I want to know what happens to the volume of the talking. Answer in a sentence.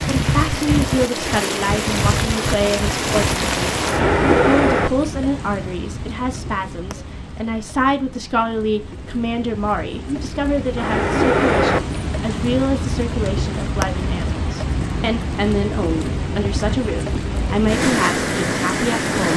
The loudness of the talking stays about the same.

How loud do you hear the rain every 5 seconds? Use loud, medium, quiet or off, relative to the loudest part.
loud, quiet, loud, loud.